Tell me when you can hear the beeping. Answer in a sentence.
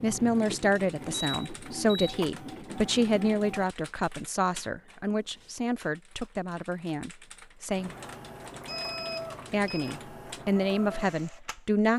The beeping can be heard from 1.1 to 2.1 s and from 8.7 to 9.9 s.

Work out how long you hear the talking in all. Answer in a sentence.
The talking can be heard for 10 seconds in total.